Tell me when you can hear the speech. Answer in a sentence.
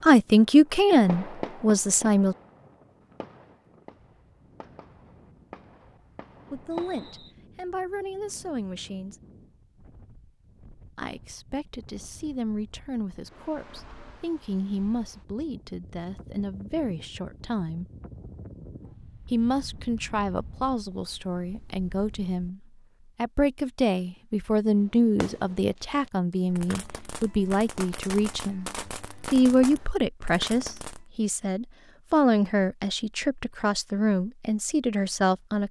You can hear the speech from 0.0 to 2.4 s, from 6.5 to 9.2 s, from 10.9 to 17.9 s, from 19.3 to 28.6 s and from 29.3 to 35.6 s.